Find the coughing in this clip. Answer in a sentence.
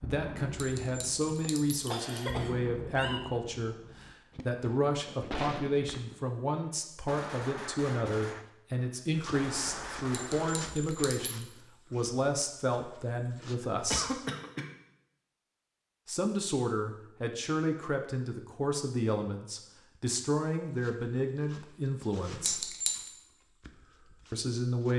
You can hear the coughing from 1.2 to 3.2 s and from 13.6 to 14.7 s.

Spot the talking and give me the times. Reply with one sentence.
You can hear the talking from 0.0 to 14.2 s, from 16.1 to 22.8 s and from 24.3 to 24.9 s.